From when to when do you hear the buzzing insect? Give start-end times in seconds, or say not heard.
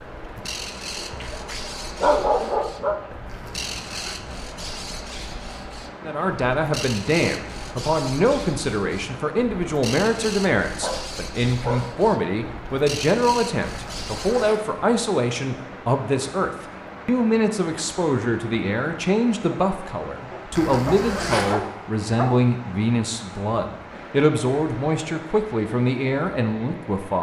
not heard.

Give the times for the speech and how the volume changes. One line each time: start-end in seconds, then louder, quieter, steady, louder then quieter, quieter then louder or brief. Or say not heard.
6.0-27.1 steady.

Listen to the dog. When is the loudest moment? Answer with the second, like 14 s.
2 s.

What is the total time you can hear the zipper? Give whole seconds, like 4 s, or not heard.
3 s.